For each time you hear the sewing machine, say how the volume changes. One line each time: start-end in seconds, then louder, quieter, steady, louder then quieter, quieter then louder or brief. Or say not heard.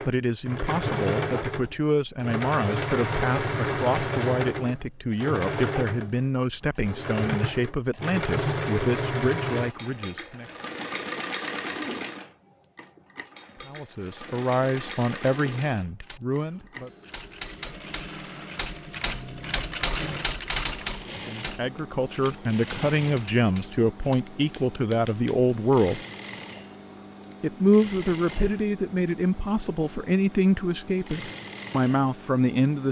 0.0-32.8 quieter.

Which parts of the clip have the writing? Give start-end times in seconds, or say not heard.
not heard.